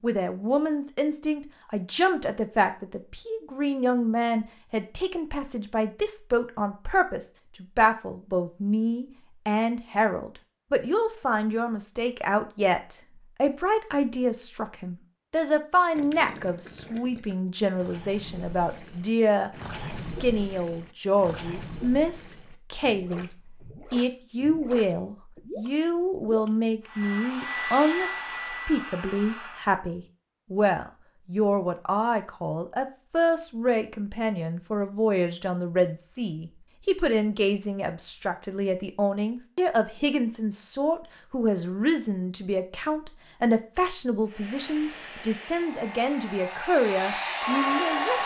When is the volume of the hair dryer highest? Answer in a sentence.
The volume of the hair dryer peaks at 48 seconds.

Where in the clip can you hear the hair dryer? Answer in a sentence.
The hair dryer can be heard from 26.8 to 29.7 s and from 44.2 to 48.2 s.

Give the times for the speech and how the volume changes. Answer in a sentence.
You can hear the speech from 0.0 to 48.2 s, at a steady volume.